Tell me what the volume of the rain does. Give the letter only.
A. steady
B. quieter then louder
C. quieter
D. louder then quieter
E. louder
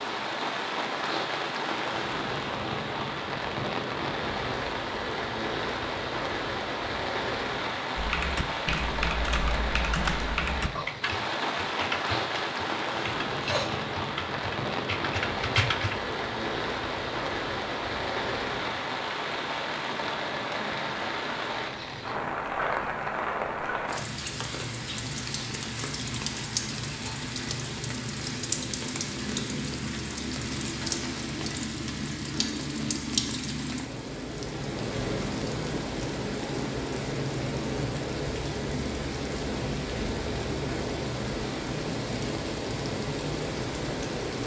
A.